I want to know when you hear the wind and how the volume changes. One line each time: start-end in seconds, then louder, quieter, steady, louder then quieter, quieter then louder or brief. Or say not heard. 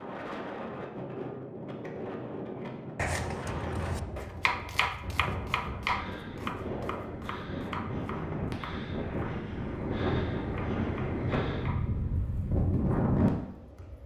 0.0-14.0 louder.